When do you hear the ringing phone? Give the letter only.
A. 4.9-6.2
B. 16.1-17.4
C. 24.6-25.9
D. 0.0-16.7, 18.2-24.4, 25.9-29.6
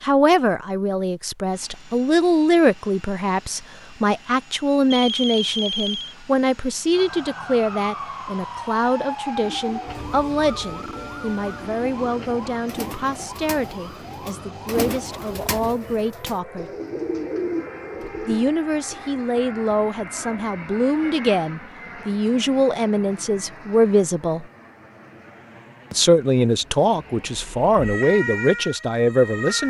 A.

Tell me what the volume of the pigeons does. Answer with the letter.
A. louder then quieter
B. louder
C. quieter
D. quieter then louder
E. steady
B.